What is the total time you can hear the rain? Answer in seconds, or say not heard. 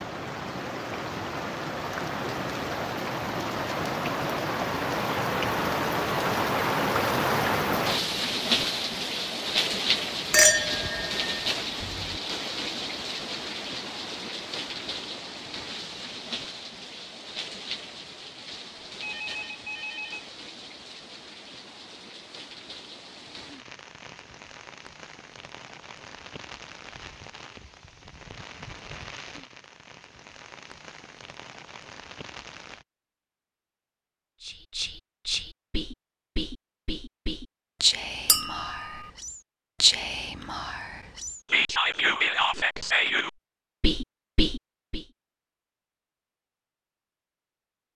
33 s.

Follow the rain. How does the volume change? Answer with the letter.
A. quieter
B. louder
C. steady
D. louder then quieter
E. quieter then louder
A.